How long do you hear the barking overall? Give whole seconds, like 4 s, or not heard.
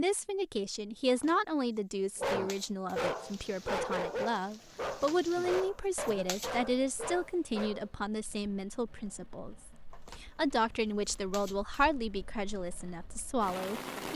6 s.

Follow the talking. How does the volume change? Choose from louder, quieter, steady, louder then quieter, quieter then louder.
steady.